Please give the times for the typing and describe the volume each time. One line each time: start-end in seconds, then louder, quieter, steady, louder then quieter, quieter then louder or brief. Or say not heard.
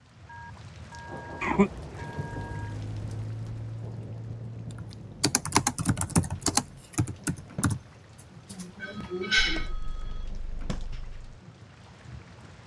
4.7-11.3 quieter.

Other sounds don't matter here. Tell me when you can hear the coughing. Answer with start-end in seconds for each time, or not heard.
1.4-2.0, 8.5-9.7.